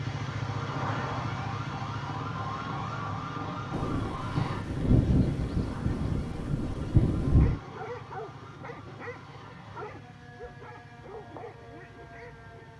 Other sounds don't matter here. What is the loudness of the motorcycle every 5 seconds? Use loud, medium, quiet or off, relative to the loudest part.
loud, medium, quiet.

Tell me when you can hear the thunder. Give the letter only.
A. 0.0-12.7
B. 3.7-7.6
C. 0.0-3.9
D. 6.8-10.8
B.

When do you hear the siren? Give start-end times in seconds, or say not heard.
0.0-12.7.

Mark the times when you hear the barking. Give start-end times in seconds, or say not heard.
7.3-12.7.